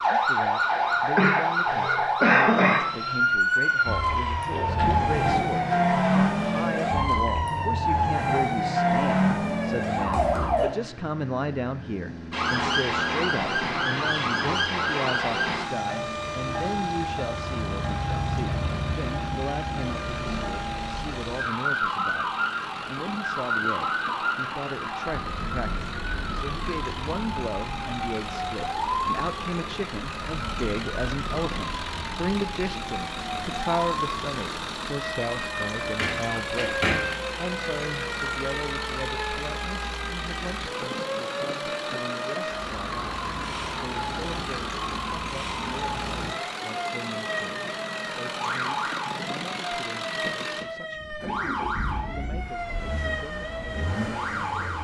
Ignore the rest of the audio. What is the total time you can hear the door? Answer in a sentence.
The door can be heard for 3 seconds in total.